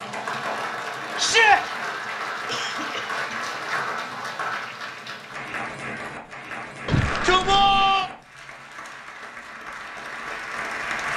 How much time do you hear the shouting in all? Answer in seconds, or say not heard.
2 s.